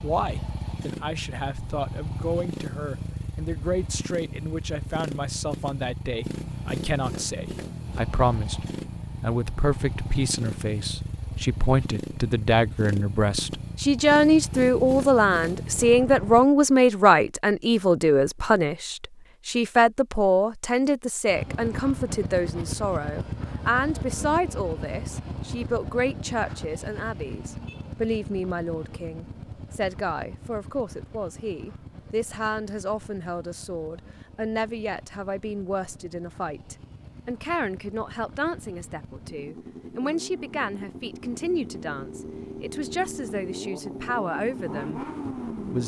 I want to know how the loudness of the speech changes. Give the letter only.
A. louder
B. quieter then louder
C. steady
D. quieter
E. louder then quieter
E.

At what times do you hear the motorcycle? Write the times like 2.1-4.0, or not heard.
0.0-16.4, 21.2-45.8.